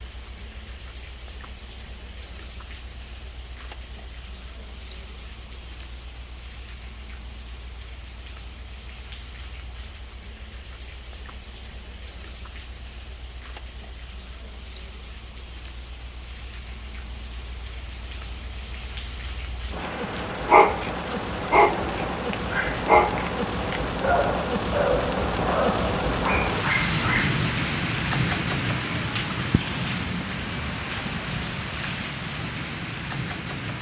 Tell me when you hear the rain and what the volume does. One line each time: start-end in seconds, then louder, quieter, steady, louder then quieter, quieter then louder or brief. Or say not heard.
0.0-33.7 louder.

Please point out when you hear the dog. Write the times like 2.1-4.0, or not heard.
19.8-27.4.